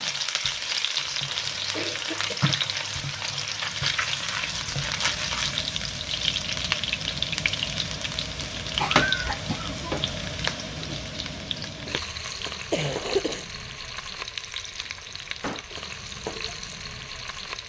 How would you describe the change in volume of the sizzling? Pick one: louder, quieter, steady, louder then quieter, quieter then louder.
quieter.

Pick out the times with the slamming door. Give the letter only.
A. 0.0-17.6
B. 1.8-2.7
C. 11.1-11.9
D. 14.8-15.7
D.